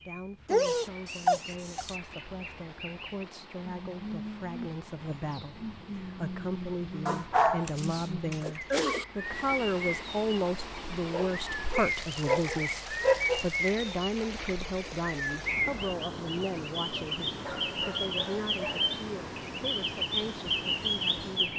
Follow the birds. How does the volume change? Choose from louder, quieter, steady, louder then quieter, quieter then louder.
louder.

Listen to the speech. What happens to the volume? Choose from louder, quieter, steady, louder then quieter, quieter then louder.
louder then quieter.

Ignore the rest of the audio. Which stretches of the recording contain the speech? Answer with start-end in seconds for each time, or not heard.
0.1-21.5.